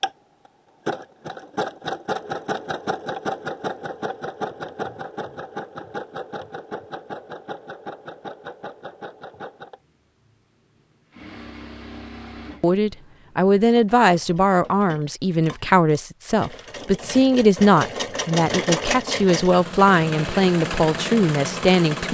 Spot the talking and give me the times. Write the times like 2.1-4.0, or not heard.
12.6-22.0.